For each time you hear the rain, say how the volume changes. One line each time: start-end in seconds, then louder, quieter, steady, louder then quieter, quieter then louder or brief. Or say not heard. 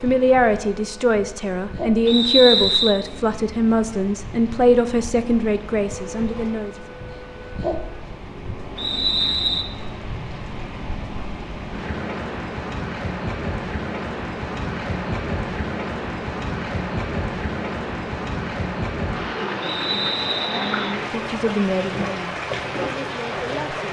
0.0-23.8 louder.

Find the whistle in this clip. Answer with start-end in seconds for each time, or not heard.
2.0-3.0, 8.8-9.7, 19.6-20.9.